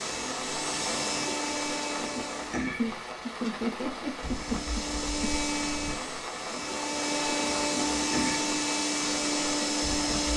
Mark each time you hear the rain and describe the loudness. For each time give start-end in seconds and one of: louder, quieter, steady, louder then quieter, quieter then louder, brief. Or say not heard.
0.0-10.3 steady.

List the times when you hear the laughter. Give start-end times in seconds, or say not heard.
2.8-5.3.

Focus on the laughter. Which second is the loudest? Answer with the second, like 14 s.
4 s.